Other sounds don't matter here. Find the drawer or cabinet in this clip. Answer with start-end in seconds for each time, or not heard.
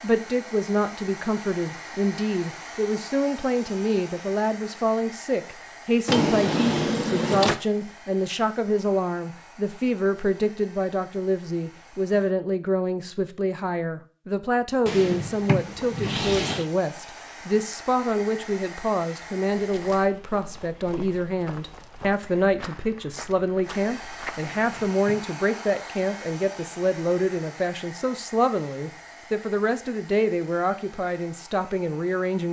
6.0-7.5, 14.8-16.6, 24.6-25.3.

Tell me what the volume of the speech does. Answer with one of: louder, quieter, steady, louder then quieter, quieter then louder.
steady.